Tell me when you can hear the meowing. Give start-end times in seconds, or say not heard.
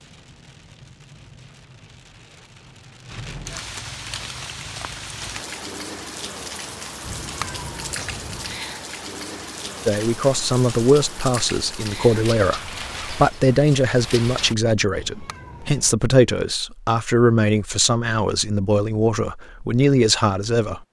7.0-8.7, 14.9-15.9.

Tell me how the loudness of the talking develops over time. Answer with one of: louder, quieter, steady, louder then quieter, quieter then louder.
steady.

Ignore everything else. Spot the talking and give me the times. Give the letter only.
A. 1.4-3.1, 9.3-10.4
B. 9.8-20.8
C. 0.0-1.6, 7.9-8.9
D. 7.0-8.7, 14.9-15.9
B.